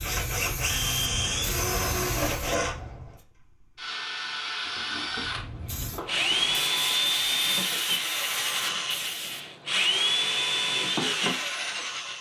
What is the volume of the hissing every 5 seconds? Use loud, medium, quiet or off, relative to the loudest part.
loud, loud, off.